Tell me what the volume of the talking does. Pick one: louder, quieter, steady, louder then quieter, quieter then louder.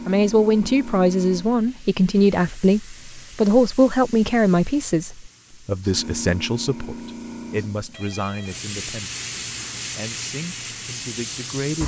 quieter.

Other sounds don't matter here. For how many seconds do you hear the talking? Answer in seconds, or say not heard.
12 s.